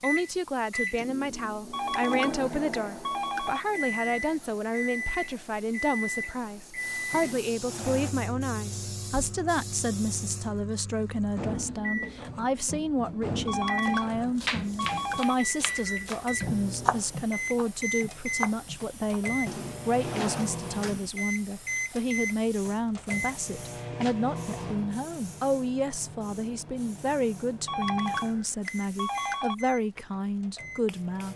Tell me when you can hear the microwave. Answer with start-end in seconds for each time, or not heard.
0.0-31.3.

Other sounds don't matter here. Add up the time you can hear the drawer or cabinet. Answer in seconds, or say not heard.
3 s.